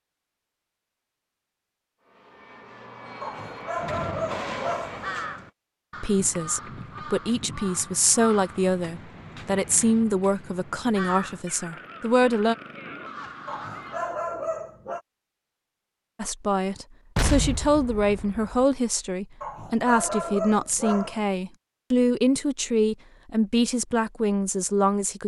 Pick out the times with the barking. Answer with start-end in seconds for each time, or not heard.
3.2-5.0, 13.4-15.0, 19.4-21.2.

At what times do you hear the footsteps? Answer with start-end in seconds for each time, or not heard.
not heard.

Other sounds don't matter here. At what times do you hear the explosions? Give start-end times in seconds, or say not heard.
17.1-18.6.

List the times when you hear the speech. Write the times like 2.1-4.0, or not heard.
6.0-12.6, 16.1-25.2.